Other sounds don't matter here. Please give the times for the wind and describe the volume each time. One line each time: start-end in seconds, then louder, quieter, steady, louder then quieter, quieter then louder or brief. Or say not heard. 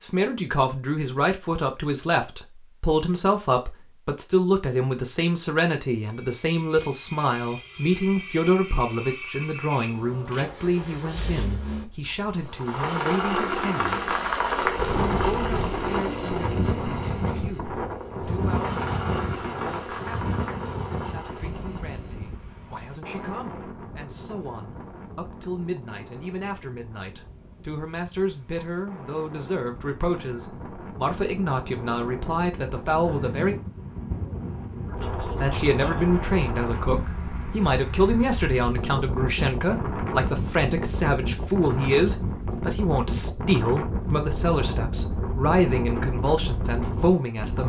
14.8-47.6 quieter then louder.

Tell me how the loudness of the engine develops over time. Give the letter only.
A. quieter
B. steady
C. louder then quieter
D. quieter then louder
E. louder
C.